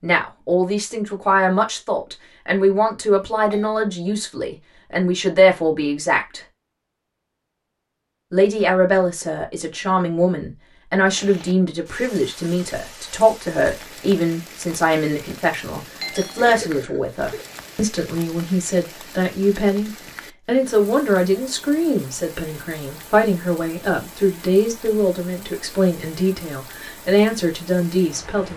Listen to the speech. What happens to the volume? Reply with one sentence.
The volume of the speech stays about the same.